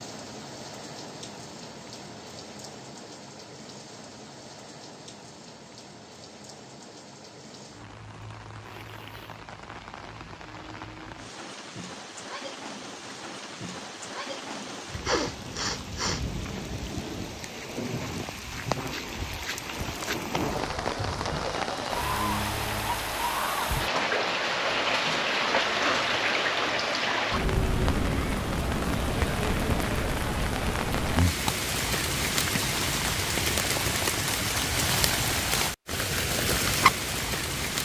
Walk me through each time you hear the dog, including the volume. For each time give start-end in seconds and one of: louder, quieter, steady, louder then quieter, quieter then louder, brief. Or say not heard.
not heard.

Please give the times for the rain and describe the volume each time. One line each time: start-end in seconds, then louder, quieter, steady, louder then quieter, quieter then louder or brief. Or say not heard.
0.0-37.7 louder.